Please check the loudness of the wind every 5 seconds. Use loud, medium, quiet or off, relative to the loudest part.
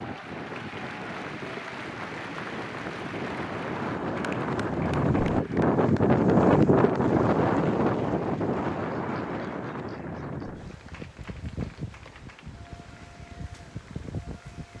medium, loud, quiet.